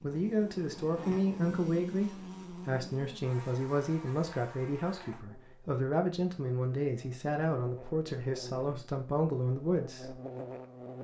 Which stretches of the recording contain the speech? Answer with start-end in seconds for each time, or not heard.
0.0-10.2.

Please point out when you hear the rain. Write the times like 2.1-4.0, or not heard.
not heard.